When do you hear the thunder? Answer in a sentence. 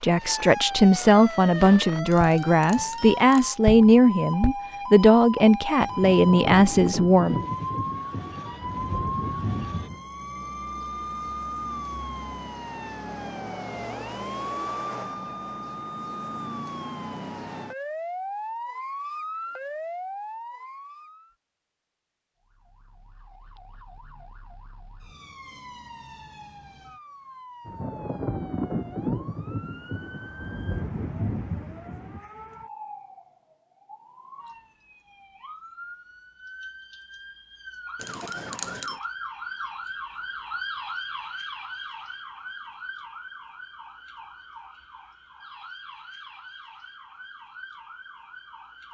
The thunder can be heard from 5.8 to 10.0 s and from 27.6 to 32.2 s.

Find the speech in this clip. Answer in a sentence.
You can hear the speech from 0.0 to 7.4 s.